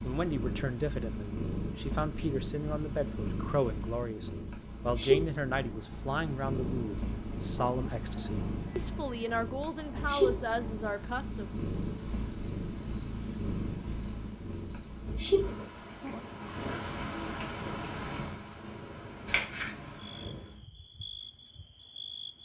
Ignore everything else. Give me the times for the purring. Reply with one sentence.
The purring can be heard from 0.0 to 20.6 s.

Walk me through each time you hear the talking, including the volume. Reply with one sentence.
The talking can be heard from 0.0 to 11.6 s, at a steady volume.